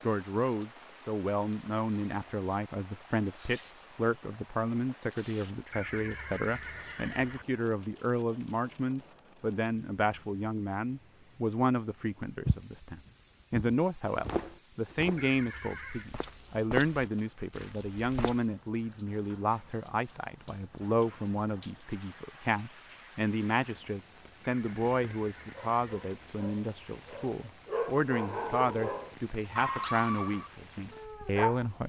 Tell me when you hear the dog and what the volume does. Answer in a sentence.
You can hear the dog from 25.5 to 31.6 s, getting louder then quieter.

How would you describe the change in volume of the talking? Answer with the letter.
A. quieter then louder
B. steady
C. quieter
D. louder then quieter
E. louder
B.